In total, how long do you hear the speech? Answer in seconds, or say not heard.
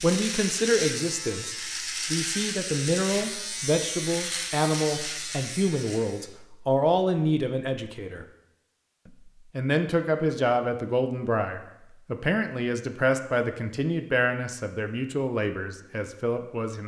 16 s.